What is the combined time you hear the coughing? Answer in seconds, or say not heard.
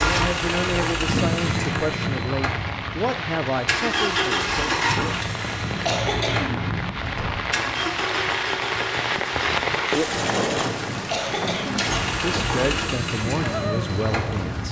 5 s.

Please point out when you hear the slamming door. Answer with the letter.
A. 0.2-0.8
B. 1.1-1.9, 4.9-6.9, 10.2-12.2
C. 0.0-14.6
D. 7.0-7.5
D.